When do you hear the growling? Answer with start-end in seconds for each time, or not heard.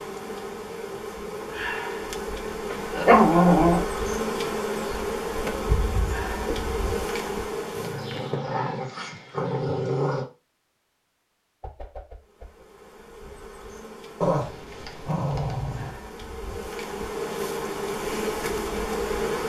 2.7-3.8, 7.8-10.2, 14.2-15.9.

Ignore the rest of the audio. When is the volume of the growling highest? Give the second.
3 s.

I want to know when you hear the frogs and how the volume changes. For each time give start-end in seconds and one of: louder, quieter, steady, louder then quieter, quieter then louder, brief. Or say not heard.
not heard.